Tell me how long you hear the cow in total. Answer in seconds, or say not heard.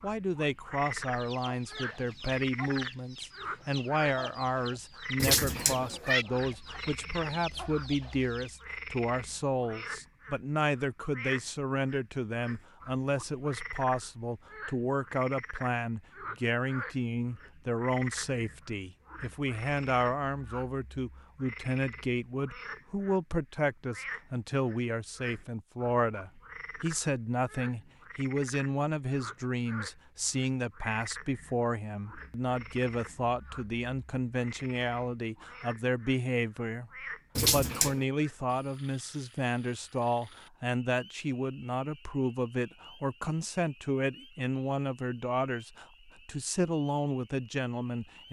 not heard.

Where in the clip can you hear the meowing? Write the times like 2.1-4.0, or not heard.
5.2-6.2, 37.4-38.0.